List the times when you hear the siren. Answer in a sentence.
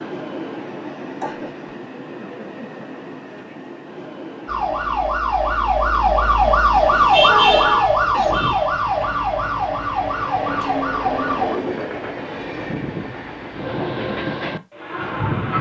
You can hear the siren from 4.5 to 11.6 s.